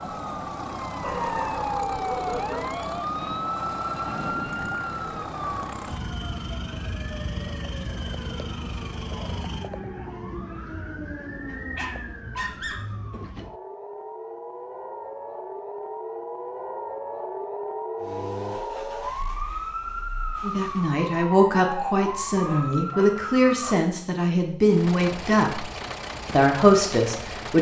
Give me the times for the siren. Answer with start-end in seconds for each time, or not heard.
0.0-23.8.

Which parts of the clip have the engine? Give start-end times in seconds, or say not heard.
0.0-9.7, 18.0-20.9, 24.6-27.5.